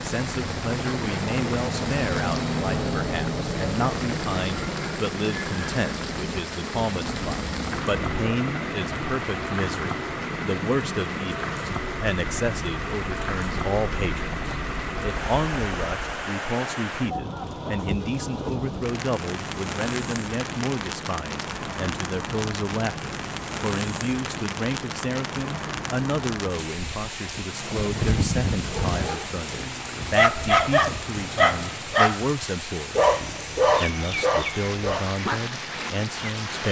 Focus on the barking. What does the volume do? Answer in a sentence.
The volume of the barking goes down.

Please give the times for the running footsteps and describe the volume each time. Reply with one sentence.
The running footsteps can't be heard in this clip.